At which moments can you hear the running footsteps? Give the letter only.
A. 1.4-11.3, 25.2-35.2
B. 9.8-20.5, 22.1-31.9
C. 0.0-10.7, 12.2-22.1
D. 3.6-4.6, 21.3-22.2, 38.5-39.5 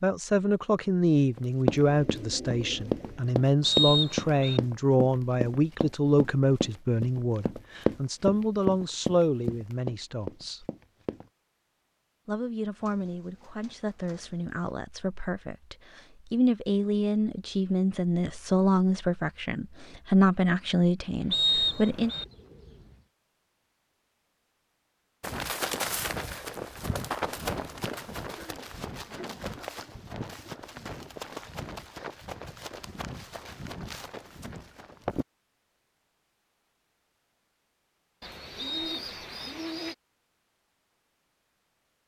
A.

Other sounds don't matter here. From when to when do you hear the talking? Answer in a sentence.
You can hear the talking from 0.0 to 10.7 s and from 12.2 to 22.1 s.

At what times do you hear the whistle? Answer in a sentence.
You can hear the whistle from 3.6 to 4.6 s, from 21.3 to 22.2 s and from 38.5 to 39.5 s.